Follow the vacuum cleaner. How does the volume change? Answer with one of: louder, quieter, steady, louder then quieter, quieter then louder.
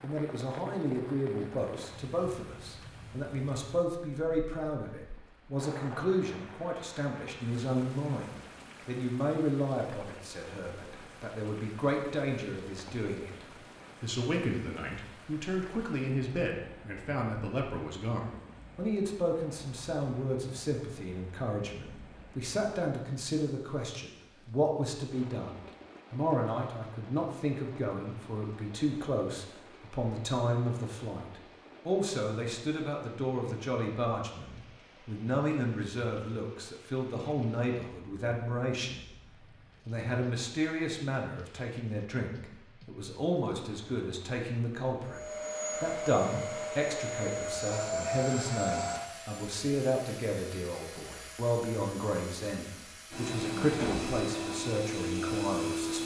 quieter then louder.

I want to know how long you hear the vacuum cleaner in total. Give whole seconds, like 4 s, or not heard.
11 s.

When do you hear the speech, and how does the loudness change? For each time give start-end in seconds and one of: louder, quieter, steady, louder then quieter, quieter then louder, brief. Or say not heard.
0.0-39.0 steady
39.9-56.0 steady.